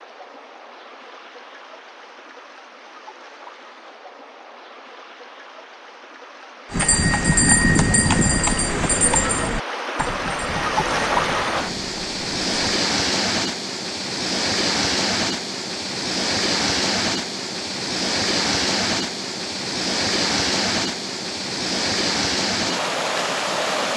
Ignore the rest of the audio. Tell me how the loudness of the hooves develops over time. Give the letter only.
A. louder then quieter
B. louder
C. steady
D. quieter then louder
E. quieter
E.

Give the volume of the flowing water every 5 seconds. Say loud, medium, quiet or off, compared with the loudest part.
quiet, medium, loud, loud, loud.